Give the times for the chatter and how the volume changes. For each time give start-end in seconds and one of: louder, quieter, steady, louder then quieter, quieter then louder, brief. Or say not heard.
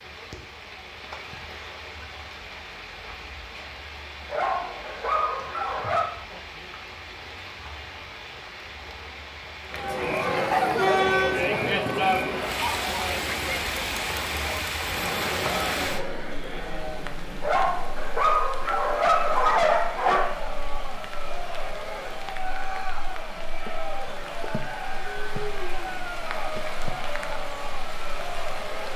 9.7-28.9 quieter.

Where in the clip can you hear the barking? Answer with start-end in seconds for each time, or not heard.
4.3-6.2, 17.4-20.4.